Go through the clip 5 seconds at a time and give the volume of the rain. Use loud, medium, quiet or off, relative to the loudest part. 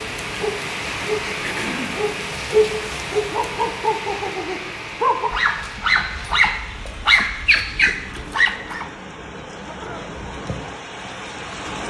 loud, medium, loud.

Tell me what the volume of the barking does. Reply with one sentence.
The loudness of the barking goes up.